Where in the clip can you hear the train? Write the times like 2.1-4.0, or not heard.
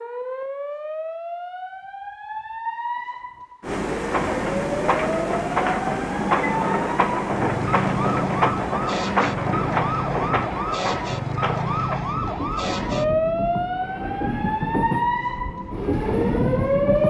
3.6-17.0.